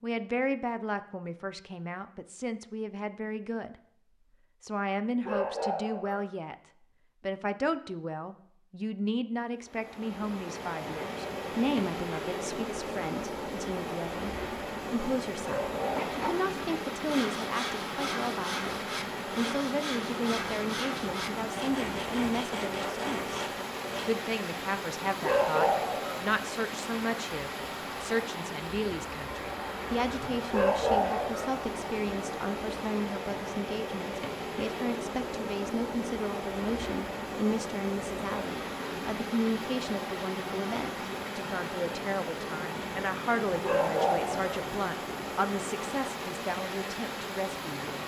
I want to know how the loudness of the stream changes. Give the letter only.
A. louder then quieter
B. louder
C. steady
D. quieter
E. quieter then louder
C.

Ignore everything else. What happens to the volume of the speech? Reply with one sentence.
The volume of the speech stays about the same.